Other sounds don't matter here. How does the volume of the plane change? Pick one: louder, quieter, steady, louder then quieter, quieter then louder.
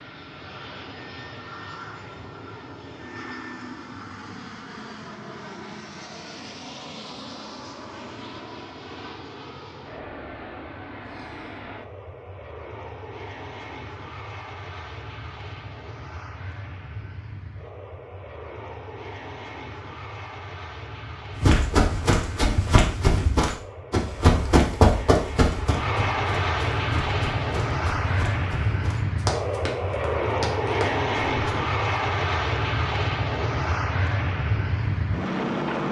louder.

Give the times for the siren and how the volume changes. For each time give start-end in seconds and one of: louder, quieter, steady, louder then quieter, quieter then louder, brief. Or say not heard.
not heard.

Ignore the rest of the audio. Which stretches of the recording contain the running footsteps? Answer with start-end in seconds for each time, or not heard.
21.4-31.6.